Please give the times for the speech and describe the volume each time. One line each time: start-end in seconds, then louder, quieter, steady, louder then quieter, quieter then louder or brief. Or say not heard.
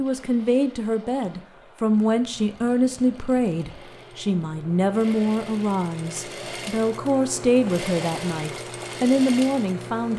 0.0-10.1 steady.